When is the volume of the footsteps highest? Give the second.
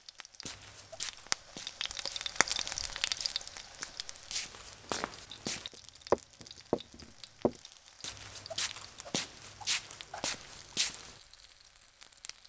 6 s.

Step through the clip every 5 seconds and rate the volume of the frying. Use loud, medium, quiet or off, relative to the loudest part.
loud, quiet, quiet.